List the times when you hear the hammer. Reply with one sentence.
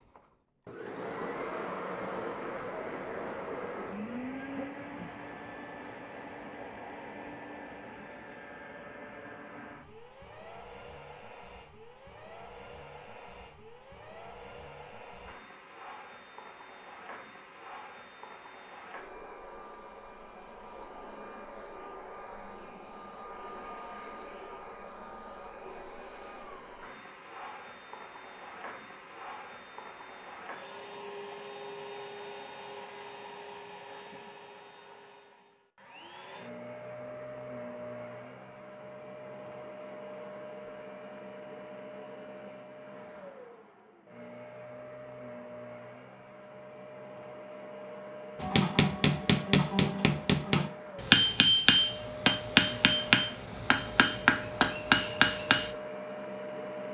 The hammer can be heard from 48.4 to 55.8 s.